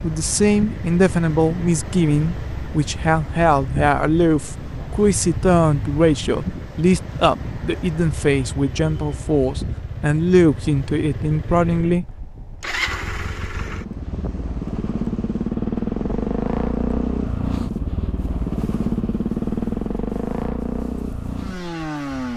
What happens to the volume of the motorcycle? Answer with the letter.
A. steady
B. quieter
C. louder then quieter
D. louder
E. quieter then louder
D.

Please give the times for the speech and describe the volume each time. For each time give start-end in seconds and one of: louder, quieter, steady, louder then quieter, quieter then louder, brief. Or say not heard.
0.0-12.1 steady.